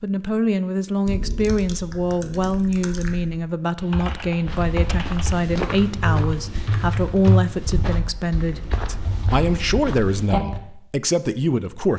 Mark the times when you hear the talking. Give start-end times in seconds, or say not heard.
0.0-11.9.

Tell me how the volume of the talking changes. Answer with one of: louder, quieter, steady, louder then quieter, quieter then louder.
steady.